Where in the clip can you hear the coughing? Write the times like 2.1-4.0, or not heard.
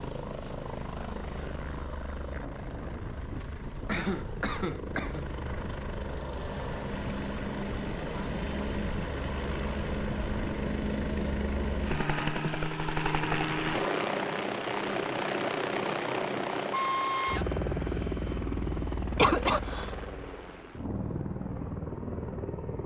3.9-5.2, 19.1-19.9.